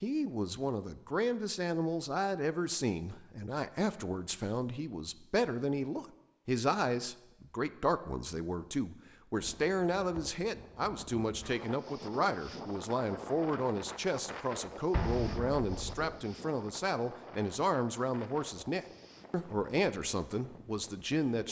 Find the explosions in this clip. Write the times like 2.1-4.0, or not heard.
14.9-16.1.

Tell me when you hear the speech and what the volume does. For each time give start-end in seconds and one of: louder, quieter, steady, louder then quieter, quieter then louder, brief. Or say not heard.
0.0-21.4 steady.